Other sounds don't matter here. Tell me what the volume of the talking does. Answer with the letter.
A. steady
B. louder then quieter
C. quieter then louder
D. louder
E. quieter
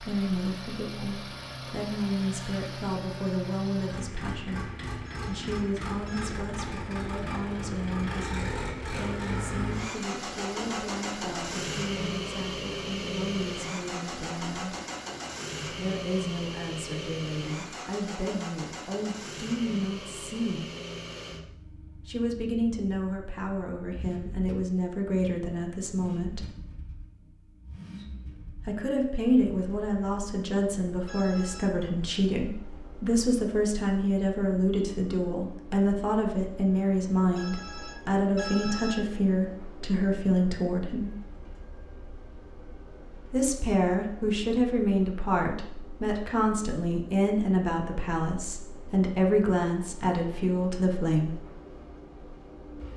D.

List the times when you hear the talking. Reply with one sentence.
The talking can be heard from 0.0 to 14.8 s, from 15.7 to 20.7 s, from 22.1 to 26.4 s, from 28.6 to 41.1 s and from 43.3 to 51.4 s.